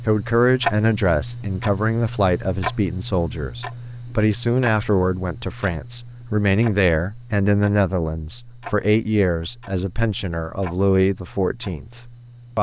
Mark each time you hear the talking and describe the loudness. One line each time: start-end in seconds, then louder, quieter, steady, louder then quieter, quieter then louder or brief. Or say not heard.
0.0-12.5 steady.